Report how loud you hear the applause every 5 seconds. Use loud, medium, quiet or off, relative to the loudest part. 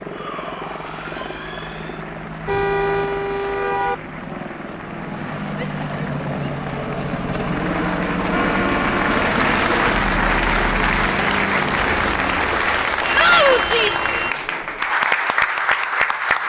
quiet, medium, loud, loud.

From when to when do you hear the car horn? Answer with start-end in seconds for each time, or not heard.
2.5-4.0, 8.3-9.2, 13.0-14.3.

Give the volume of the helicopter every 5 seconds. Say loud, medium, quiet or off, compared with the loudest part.
medium, loud, loud, off.